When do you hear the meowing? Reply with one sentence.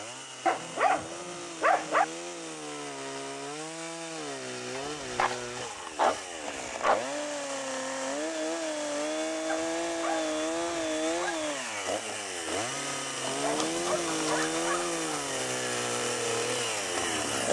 You can't hear the meowing here.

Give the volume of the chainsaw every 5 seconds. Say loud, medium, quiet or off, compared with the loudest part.
medium, loud, loud, loud.